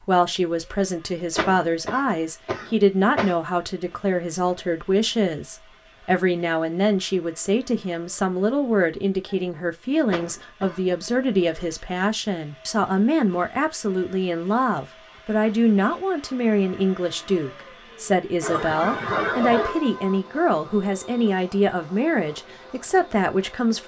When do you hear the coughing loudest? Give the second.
19 s.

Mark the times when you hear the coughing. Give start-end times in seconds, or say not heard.
1.4-3.4, 10.1-10.8, 18.4-19.8.